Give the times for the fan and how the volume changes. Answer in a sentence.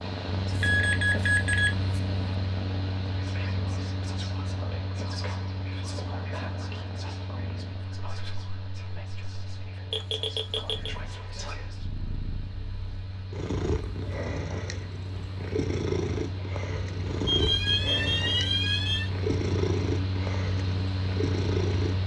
The fan can be heard from 0.0 to 22.0 s, getting quieter then louder.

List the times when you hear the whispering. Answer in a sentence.
You can hear the whispering from 3.0 to 11.8 s.